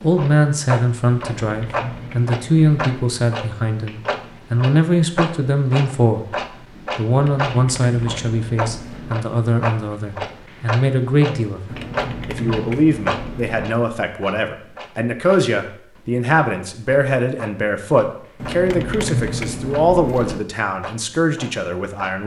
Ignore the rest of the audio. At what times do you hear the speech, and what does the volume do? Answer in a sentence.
You can hear the speech from 0.0 to 22.2 s, at a steady volume.